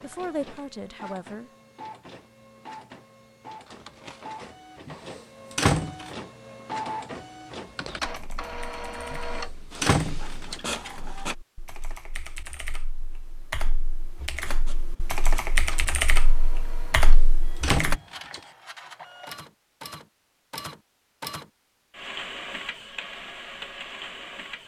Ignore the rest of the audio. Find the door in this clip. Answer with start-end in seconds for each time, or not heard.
4.8-6.1, 9.1-10.6, 16.9-18.4.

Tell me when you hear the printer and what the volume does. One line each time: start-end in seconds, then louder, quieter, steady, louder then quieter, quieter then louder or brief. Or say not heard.
0.0-11.3 louder
14.2-24.6 louder.